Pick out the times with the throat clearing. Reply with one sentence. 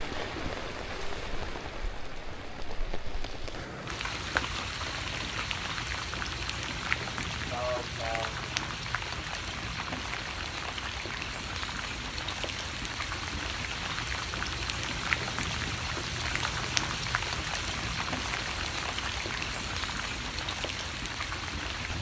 You can hear the throat clearing from 7.5 to 8.3 s.